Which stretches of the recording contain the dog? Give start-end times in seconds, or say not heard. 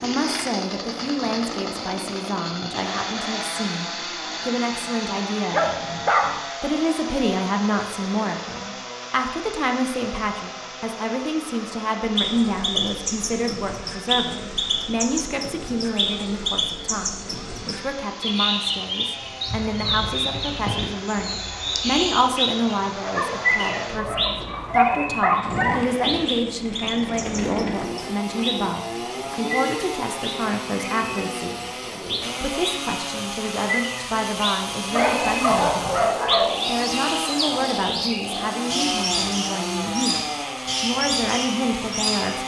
5.5-6.4, 23.0-25.8, 34.9-36.5.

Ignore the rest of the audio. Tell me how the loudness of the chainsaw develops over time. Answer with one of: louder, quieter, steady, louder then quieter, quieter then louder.
quieter then louder.